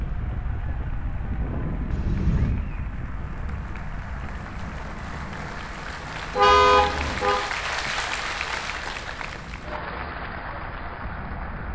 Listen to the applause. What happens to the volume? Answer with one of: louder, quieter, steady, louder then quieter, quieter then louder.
louder then quieter.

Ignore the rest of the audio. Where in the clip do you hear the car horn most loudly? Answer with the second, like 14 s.
7 s.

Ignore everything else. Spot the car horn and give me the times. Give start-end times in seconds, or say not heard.
1.9-2.5, 6.3-7.4.